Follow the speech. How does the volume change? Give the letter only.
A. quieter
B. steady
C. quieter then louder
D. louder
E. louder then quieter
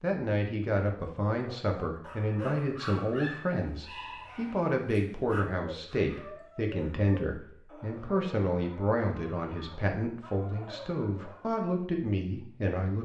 B.